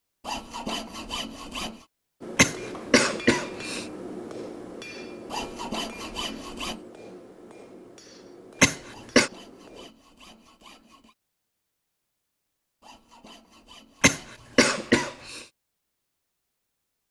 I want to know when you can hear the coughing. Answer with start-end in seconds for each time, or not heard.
2.4-3.9, 8.6-9.3, 14.0-15.4.